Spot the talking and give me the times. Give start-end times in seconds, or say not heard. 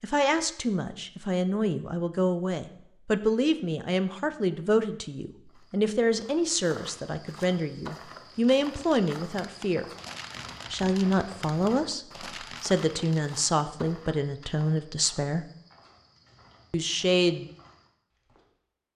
0.0-9.8, 10.7-15.4, 16.7-17.5.